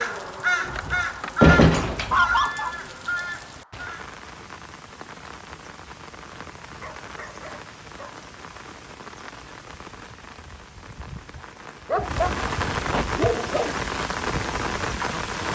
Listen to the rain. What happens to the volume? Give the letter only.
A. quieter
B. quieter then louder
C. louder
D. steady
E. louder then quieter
C.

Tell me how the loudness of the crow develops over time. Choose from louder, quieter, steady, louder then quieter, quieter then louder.
quieter.